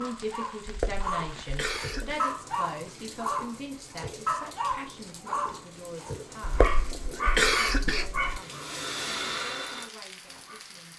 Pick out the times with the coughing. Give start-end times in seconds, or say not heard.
0.7-2.2, 6.4-8.3.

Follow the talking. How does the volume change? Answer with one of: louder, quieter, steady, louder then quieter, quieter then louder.
quieter.